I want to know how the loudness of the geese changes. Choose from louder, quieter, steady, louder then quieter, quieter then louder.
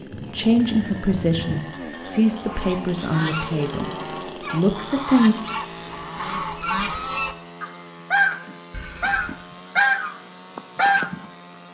louder.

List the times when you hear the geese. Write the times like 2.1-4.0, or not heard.
2.4-11.2.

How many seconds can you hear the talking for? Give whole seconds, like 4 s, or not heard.
5 s.